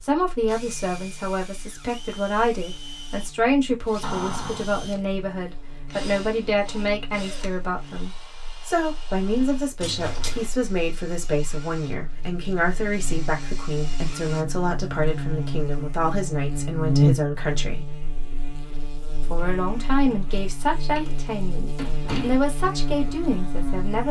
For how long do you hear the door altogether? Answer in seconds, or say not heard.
3 s.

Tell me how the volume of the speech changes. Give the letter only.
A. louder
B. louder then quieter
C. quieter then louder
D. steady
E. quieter
D.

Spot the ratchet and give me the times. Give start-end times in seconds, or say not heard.
not heard.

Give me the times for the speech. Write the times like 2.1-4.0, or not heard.
0.0-17.9, 19.3-24.0.